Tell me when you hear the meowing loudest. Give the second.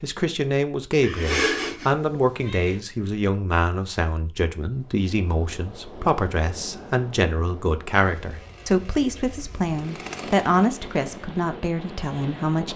1 s.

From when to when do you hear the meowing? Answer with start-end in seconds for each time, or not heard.
1.0-2.8.